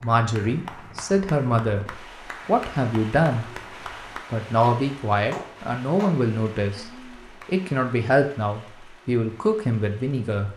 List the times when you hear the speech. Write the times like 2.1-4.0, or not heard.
0.0-3.5, 4.3-10.5.